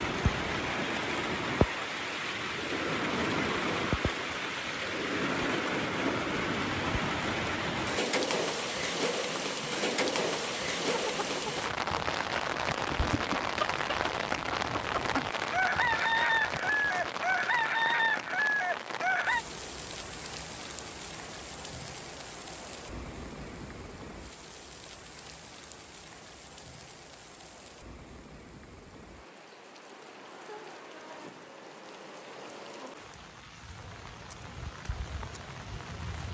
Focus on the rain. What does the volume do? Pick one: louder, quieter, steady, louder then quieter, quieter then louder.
quieter.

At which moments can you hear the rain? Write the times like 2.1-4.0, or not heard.
0.0-36.3.